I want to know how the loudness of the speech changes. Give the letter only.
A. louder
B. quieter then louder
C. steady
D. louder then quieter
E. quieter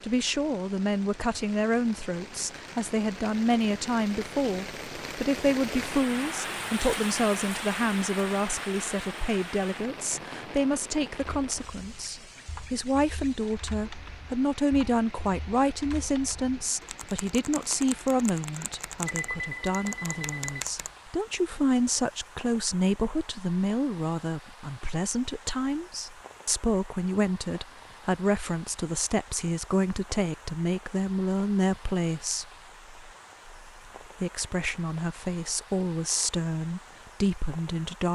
C.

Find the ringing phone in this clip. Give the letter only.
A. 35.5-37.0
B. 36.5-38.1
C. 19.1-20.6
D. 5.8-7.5
C.